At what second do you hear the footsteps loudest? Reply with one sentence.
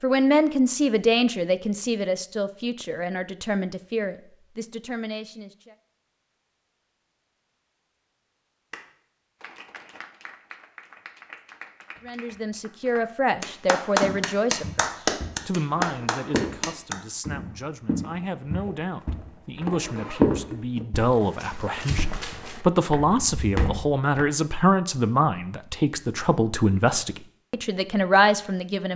The volume of the footsteps peaks at 20 seconds.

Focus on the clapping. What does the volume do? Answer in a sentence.
The loudness of the clapping goes up.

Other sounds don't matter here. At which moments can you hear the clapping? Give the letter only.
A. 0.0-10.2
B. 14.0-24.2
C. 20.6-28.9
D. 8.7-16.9
D.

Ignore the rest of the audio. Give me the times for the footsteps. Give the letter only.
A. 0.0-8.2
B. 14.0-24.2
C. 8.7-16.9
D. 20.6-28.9
B.